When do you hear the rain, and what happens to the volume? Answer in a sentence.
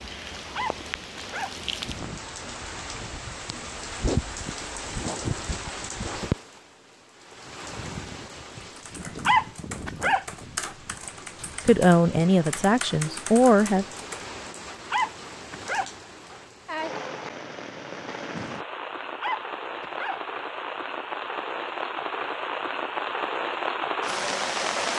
The rain can be heard from 0.0 to 24.9 s, getting quieter then louder.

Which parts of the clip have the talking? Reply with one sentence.
The talking can be heard from 11.7 to 13.8 s.